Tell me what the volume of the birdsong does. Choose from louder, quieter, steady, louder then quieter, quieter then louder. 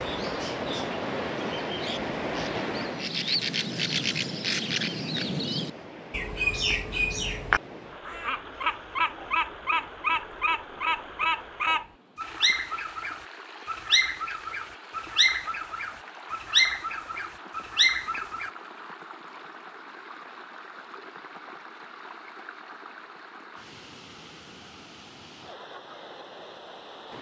louder.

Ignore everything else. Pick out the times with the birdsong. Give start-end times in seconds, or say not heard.
0.0-18.5.